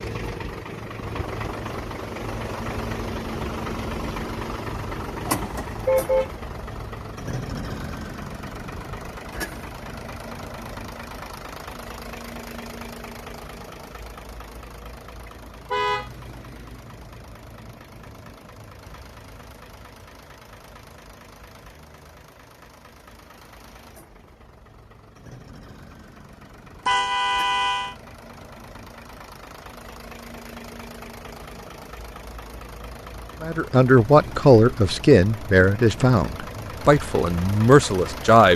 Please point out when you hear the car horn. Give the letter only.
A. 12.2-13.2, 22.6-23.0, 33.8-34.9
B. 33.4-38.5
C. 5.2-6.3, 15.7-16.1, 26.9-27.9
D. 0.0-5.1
C.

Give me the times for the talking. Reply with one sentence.
You can hear the talking from 33.4 to 38.5 s.